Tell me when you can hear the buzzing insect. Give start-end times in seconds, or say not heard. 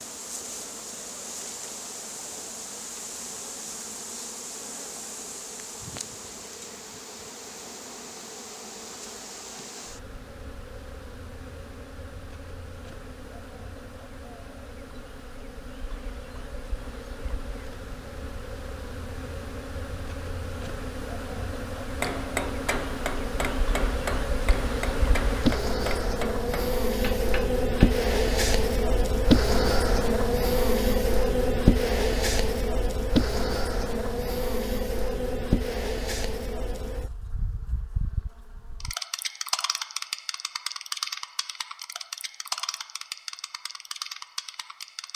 0.0-45.1.